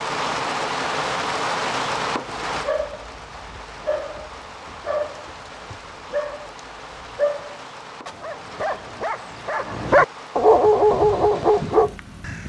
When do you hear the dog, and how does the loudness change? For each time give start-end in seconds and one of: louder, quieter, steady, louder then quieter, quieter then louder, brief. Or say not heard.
2.5-11.9 louder.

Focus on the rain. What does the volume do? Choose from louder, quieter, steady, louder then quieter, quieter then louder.
quieter.